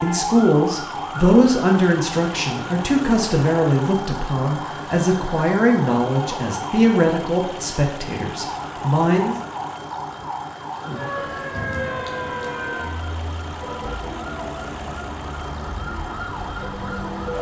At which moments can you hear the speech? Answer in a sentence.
You can hear the speech from 0.0 to 9.3 s.